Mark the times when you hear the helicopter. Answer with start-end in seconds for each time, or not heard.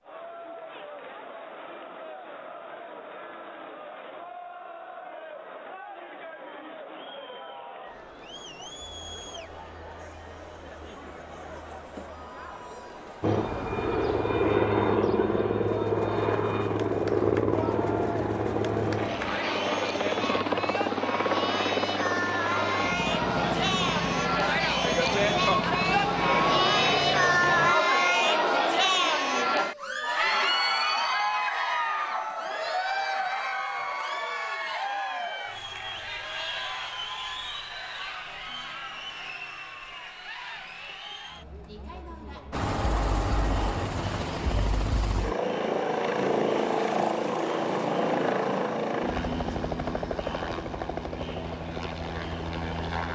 13.2-27.8, 42.5-53.0.